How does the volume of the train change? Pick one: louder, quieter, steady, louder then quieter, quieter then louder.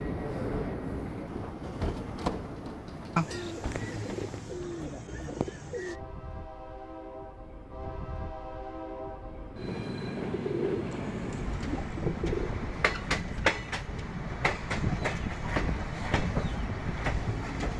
quieter then louder.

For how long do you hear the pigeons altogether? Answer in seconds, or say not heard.
5 s.